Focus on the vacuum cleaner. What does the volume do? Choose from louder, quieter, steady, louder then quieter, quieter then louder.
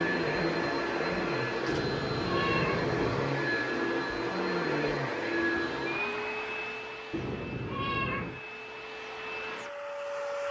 quieter.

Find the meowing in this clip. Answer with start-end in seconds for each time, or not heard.
1.6-3.4, 7.1-8.4.